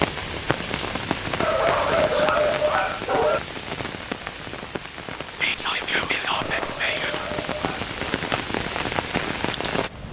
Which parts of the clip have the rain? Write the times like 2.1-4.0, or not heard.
0.0-10.0.